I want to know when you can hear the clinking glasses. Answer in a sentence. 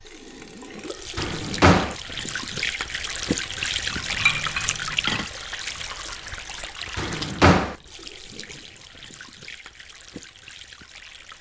You can hear the clinking glasses from 3.9 to 5.2 s.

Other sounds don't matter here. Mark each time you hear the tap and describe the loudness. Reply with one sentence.
You can hear the tap from 0.0 to 11.3 s, getting louder then quieter.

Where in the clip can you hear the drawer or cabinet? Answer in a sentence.
The drawer or cabinet can be heard from 1.1 to 1.9 s and from 7.0 to 7.8 s.